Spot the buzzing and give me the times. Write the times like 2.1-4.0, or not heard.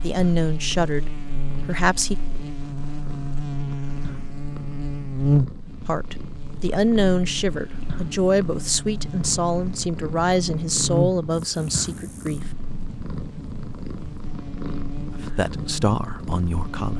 0.0-16.9.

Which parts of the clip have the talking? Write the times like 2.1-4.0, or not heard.
0.0-2.1, 5.8-12.4, 15.1-16.9.